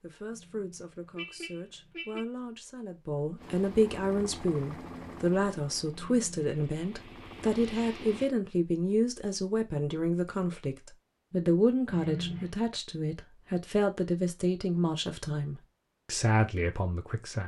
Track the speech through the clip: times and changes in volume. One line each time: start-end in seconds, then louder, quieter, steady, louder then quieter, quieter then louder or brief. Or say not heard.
0.0-17.4 louder.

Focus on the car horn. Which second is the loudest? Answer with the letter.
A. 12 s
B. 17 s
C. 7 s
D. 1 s
A.